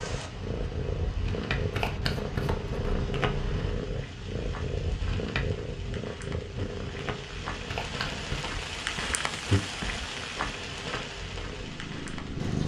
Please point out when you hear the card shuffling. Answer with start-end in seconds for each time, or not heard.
1.7-3.7, 7.7-8.5.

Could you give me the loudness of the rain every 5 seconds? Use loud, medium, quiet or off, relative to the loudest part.
medium, loud, loud.